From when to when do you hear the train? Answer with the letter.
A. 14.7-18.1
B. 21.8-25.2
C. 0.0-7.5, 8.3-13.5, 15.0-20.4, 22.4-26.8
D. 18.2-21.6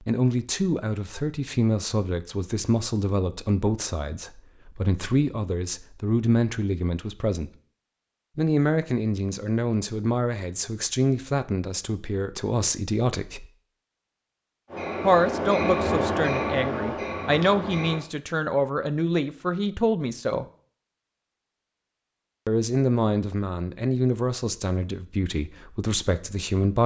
A.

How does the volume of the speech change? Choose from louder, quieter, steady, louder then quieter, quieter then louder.
steady.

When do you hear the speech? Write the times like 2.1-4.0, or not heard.
0.0-7.5, 8.3-13.5, 15.0-20.4, 22.4-26.8.